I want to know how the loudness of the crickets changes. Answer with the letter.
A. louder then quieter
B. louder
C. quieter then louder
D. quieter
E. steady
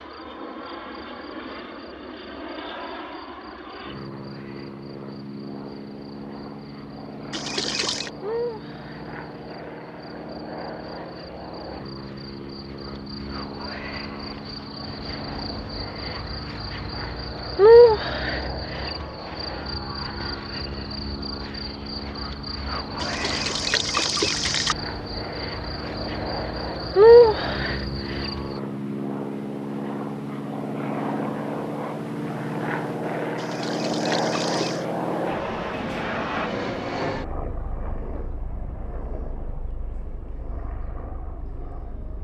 B.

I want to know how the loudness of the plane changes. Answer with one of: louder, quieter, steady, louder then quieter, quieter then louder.
louder.